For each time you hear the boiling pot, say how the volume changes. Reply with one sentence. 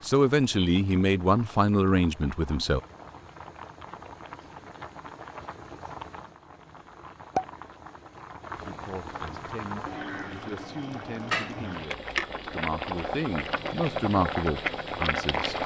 You can hear the boiling pot from 0.0 to 15.6 s, getting louder.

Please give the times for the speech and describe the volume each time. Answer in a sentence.
The speech can be heard briefly from 0.0 to 2.8 s; and from 8.5 to 15.6 s, getting louder.